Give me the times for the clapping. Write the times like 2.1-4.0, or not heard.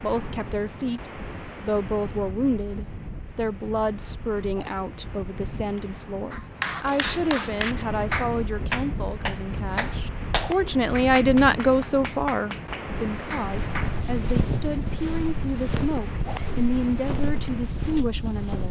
6.3-14.0.